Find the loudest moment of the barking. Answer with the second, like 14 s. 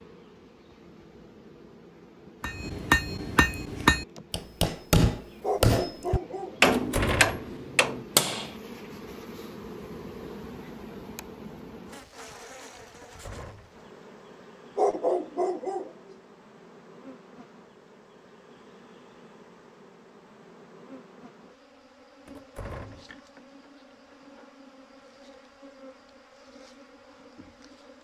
15 s.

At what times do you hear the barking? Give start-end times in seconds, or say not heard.
5.4-6.8, 14.8-15.9.